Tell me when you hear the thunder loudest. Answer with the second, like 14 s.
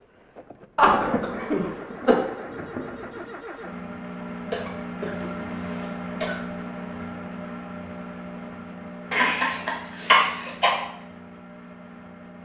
1 s.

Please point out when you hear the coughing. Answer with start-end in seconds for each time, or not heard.
0.8-2.1, 4.5-6.4, 9.1-10.8.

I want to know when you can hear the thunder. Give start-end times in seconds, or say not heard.
0.8-3.3.